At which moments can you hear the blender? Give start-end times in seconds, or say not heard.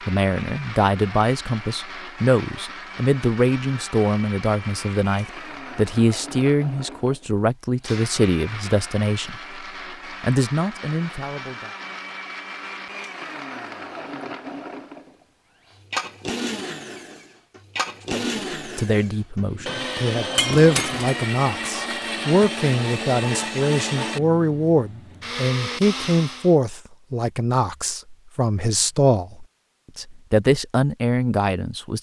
0.0-26.6.